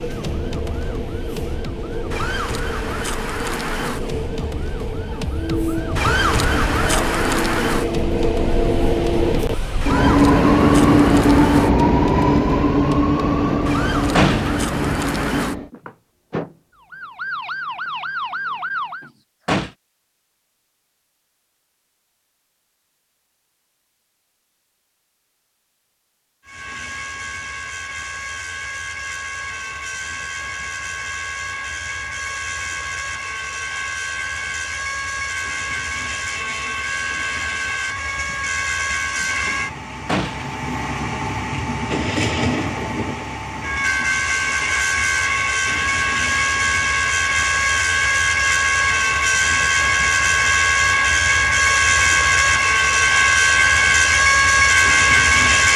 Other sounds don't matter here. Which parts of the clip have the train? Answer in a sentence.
The train can be heard from 0.0 to 15.7 s and from 26.4 to 55.7 s.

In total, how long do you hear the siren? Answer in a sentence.
You can hear the siren for 19 seconds altogether.